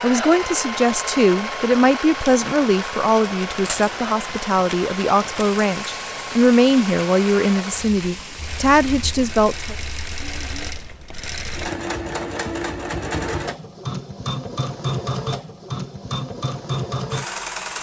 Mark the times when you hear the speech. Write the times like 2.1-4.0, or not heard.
0.0-9.8.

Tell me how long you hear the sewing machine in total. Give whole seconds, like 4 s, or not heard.
18 s.